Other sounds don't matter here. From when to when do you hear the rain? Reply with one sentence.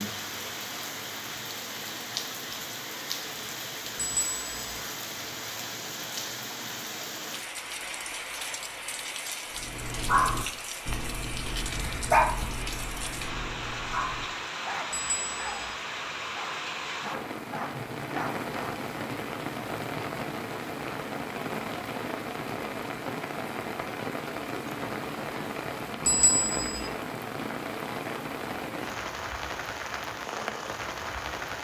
You can hear the rain from 0.0 to 31.5 s.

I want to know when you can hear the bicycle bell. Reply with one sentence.
The bicycle bell can be heard from 4.0 to 4.8 s, from 14.9 to 15.8 s and from 26.1 to 26.9 s.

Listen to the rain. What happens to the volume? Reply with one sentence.
The loudness of the rain stays about the same.